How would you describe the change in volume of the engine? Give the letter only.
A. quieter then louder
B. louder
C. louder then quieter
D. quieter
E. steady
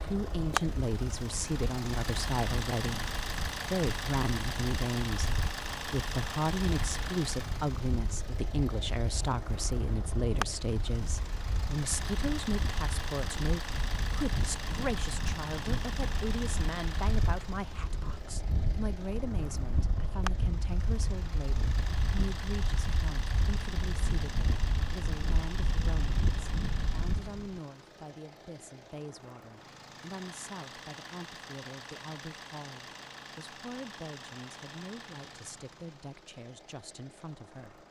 D.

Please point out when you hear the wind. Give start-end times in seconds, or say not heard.
0.0-27.6.